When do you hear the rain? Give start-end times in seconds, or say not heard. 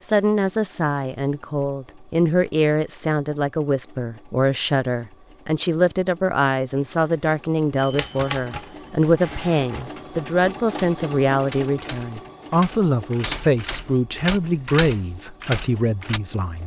not heard.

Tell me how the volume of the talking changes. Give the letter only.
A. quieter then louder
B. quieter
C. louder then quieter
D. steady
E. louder
D.